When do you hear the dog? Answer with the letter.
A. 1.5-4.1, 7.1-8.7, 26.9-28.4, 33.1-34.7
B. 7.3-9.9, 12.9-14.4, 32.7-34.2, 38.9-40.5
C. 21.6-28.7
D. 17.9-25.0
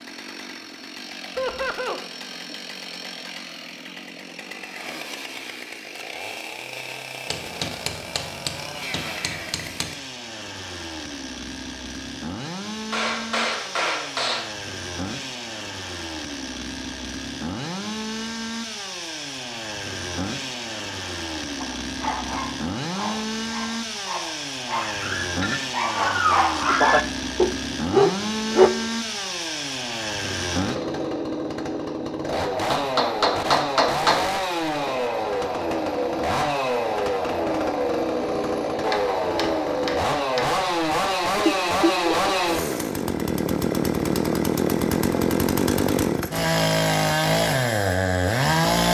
C.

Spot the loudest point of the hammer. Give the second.
34 s.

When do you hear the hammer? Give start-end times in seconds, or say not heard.
7.3-9.9, 12.9-14.4, 32.7-34.2, 38.9-40.5.